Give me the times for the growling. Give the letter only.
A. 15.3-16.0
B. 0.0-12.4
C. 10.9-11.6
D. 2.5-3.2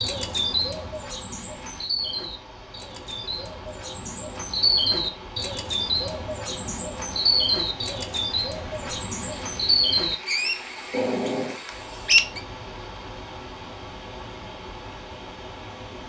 C.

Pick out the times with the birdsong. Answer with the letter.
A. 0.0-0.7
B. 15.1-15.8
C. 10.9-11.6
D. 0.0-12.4
D.